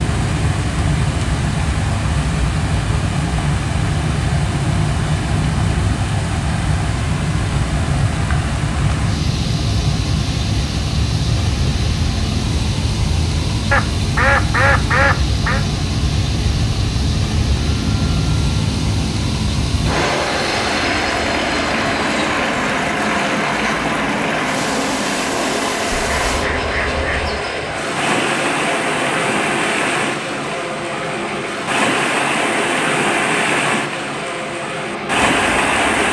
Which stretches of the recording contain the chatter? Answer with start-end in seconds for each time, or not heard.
not heard.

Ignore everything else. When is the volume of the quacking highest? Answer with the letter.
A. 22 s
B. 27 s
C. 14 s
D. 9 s
C.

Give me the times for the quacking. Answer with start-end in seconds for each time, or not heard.
13.7-15.7, 25.9-27.4.